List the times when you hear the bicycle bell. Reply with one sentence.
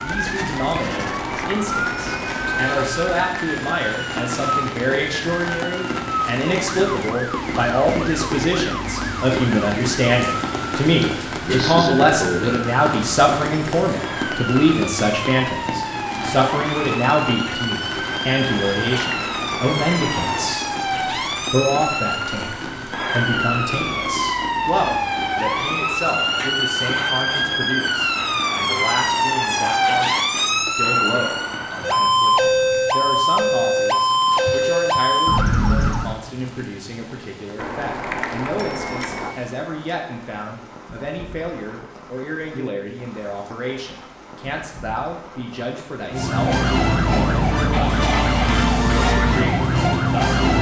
The bicycle bell can be heard from 0.9 to 2.9 s, from 18.6 to 20.5 s and from 37.5 to 39.4 s.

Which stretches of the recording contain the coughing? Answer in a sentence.
You can hear the coughing from 10.8 to 12.7 s.